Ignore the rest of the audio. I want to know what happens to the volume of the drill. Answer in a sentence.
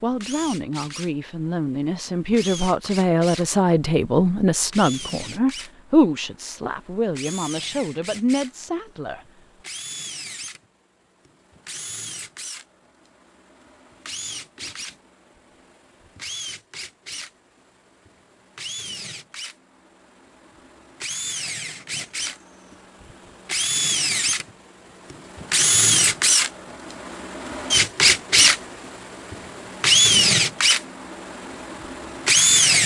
The loudness of the drill goes up.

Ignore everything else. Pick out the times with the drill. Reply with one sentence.
You can hear the drill from 0.0 to 32.8 s.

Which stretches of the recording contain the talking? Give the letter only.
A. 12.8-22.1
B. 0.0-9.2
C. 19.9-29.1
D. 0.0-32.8
B.